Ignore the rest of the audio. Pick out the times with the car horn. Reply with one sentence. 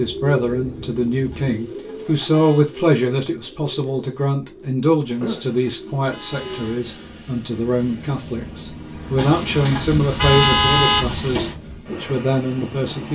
You can hear the car horn from 1.3 to 2.6 s, from 5.0 to 6.8 s and from 9.2 to 11.6 s.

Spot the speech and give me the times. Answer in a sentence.
The speech can be heard from 0.0 to 13.1 s.